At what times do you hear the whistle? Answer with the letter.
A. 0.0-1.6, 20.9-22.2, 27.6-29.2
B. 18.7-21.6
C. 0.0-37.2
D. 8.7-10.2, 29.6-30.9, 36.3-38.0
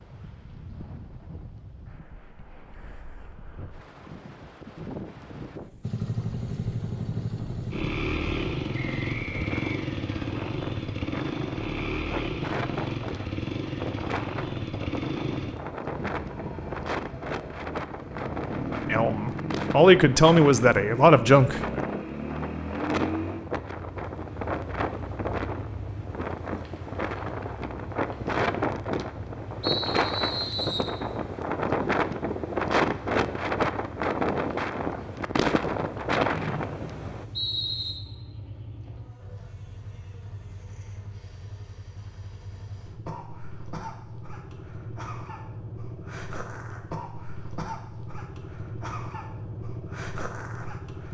D.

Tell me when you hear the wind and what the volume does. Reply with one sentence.
The wind can be heard from 0.0 to 37.2 s, getting louder.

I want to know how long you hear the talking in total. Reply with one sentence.
You can hear the talking for 3 seconds altogether.